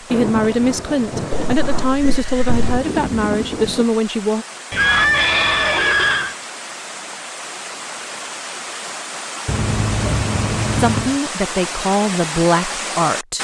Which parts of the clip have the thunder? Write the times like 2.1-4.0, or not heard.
0.1-3.9.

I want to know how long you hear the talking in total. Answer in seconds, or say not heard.
7 s.